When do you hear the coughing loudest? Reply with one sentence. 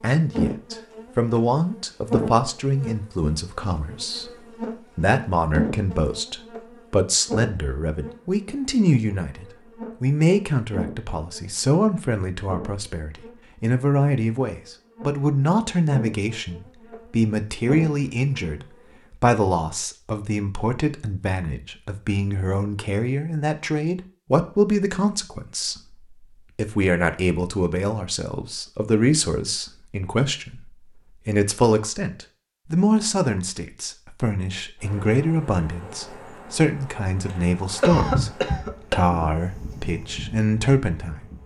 The volume of the coughing peaks at 38 seconds.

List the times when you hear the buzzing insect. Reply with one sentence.
You can hear the buzzing insect from 0.0 to 18.9 s and from 34.8 to 41.4 s.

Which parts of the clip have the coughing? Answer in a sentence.
You can hear the coughing from 37.8 to 39.2 s.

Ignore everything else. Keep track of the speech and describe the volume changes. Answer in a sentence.
The loudness of the speech stays about the same.